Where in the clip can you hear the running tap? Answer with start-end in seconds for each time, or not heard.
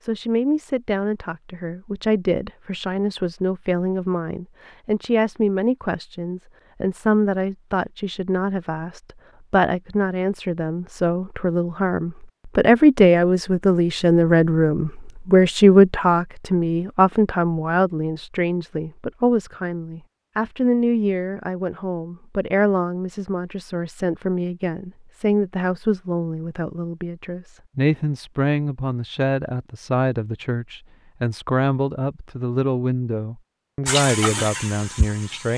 33.9-35.5.